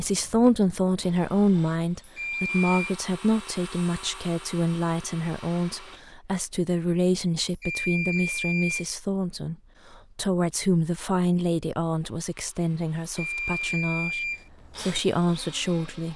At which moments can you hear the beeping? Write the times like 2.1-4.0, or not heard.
2.0-3.0, 7.5-8.9, 13.0-14.4.